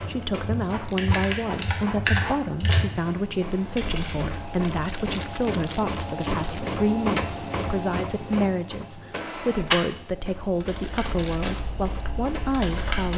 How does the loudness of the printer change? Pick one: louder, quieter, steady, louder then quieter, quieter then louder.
louder then quieter.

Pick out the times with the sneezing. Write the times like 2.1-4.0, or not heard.
not heard.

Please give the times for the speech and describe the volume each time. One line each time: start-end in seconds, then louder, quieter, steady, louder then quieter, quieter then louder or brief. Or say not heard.
0.0-13.1 steady.